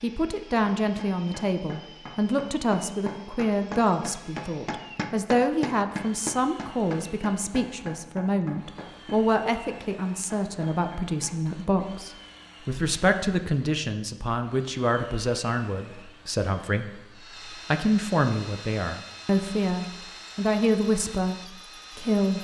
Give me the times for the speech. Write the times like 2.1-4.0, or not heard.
0.0-22.3.